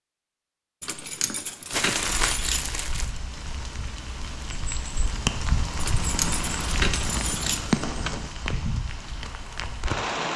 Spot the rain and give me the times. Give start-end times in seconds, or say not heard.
2.0-10.3.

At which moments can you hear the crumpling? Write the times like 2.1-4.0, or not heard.
1.7-3.1.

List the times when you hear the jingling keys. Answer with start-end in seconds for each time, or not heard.
0.8-2.7, 5.8-7.7.